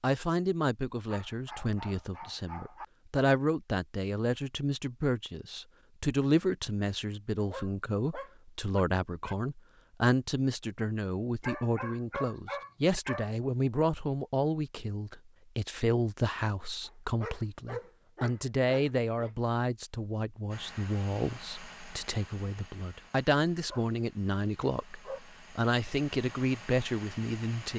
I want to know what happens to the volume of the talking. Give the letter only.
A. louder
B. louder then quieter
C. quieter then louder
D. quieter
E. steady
E.